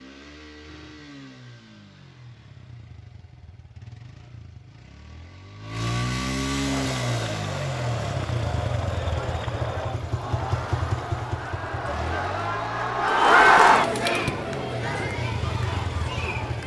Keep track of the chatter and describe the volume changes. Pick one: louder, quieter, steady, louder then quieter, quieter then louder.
louder then quieter.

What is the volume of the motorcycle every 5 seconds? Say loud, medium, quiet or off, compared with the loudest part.
quiet, loud, medium, loud.